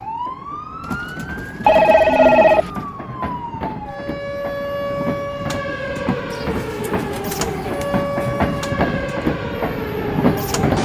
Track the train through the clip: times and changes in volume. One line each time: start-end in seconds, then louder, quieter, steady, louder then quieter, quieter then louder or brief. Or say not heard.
0.0-10.8 louder.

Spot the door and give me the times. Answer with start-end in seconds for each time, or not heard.
not heard.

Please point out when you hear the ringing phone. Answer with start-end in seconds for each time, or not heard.
1.6-2.7.